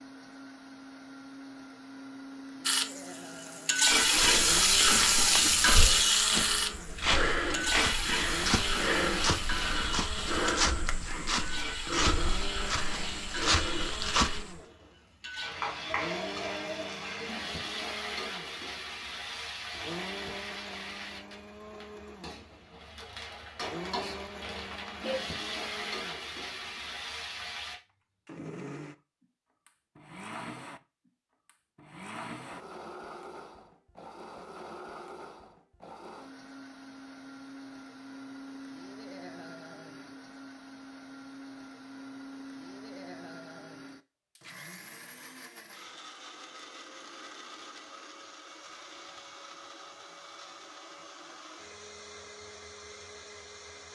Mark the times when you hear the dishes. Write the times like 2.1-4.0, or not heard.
not heard.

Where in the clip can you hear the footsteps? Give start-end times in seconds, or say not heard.
3.9-14.6.